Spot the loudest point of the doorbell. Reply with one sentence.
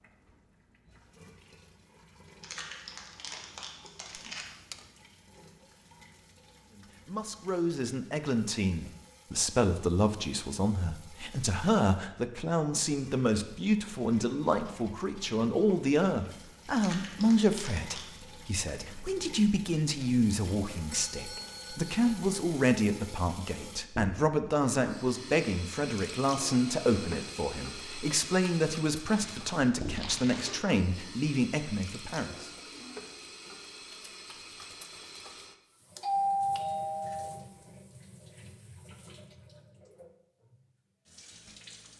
The loudest moment of the doorbell is at 36 seconds.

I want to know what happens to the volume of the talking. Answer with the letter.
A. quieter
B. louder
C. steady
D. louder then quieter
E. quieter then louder
C.